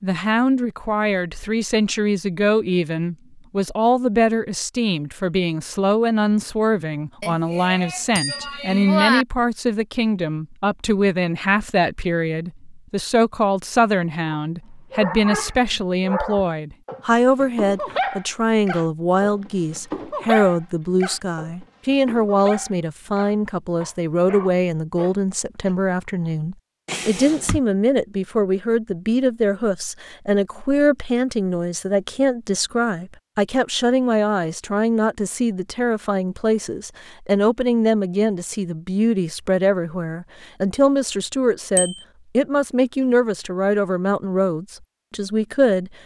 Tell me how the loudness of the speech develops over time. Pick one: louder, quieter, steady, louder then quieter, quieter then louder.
steady.